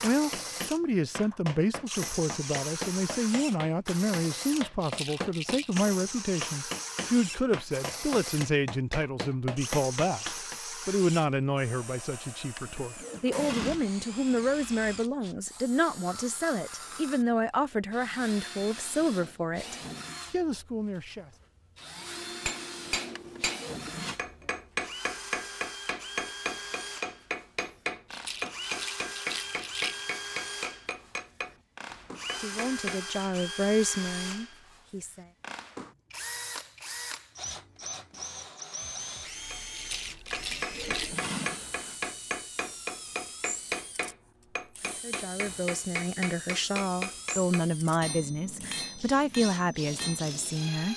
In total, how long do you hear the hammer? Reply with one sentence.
The hammer can be heard for 33 seconds in total.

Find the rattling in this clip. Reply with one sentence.
You can hear the rattling from 4.8 to 5.8 s, from 28.1 to 30.1 s and from 39.7 to 41.1 s.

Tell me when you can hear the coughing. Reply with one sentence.
You can't hear the coughing here.